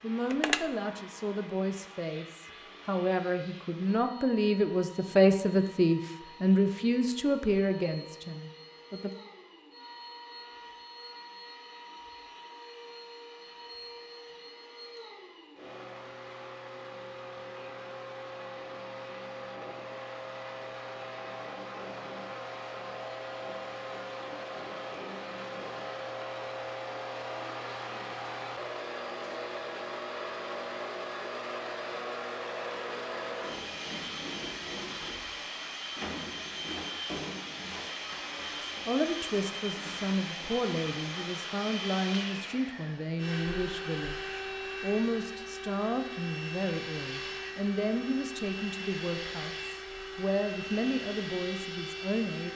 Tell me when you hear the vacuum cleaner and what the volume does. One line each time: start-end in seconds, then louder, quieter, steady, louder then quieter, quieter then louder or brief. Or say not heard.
0.0-52.5 louder.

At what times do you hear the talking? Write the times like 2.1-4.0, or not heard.
0.0-9.1, 38.9-52.5.